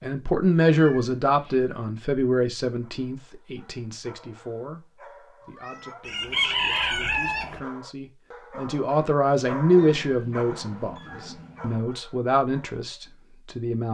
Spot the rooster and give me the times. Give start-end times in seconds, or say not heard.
6.0-7.6.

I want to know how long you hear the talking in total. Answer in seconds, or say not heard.
14 s.